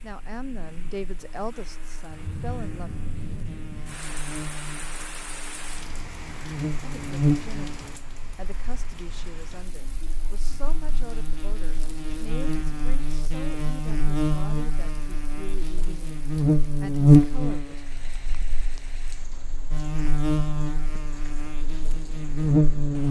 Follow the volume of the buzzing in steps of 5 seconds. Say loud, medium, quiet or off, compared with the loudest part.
quiet, medium, medium, loud, loud.